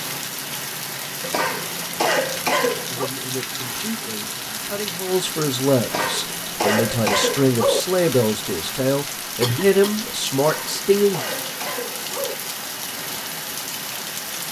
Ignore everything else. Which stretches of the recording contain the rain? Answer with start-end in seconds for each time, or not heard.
0.0-14.4.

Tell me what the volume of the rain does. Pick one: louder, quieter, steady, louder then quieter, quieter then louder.
steady.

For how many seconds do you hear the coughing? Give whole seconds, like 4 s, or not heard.
6 s.